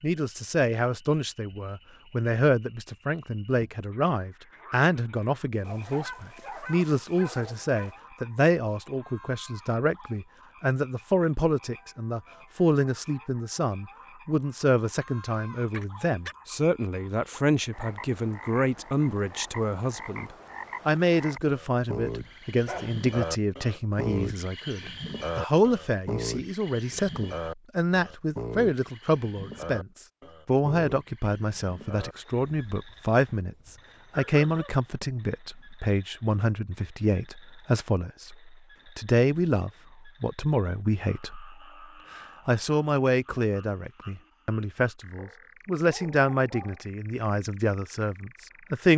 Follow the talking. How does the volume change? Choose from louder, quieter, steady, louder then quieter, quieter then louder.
steady.